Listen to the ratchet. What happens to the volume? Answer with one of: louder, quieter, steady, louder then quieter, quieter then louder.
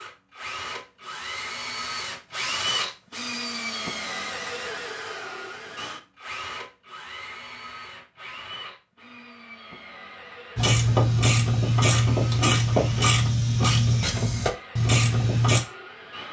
steady.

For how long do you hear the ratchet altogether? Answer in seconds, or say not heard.
5 s.